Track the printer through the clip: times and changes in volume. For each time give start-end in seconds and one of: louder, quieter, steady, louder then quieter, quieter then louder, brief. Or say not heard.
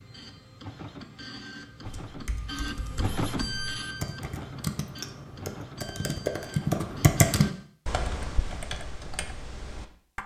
0.0-7.7 louder then quieter.